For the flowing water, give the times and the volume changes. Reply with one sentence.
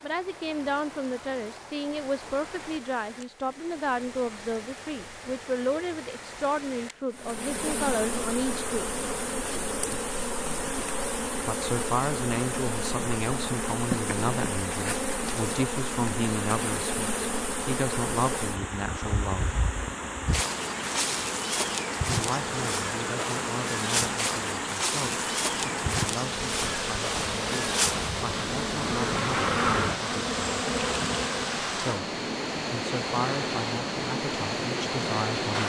You can hear the flowing water from 0.0 to 35.6 s, getting louder.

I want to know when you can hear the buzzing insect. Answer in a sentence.
You can hear the buzzing insect from 7.1 to 31.6 s.